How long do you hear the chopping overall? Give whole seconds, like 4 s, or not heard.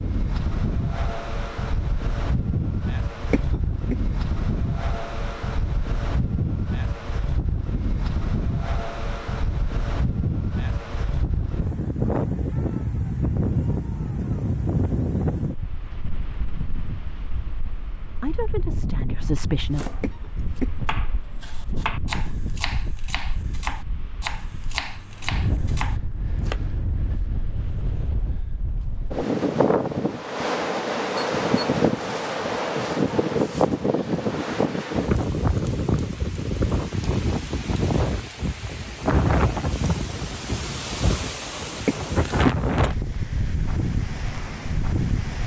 7 s.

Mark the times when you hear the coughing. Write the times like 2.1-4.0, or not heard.
3.3-4.0, 20.0-20.9, 41.9-42.8.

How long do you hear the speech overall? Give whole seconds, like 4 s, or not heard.
2 s.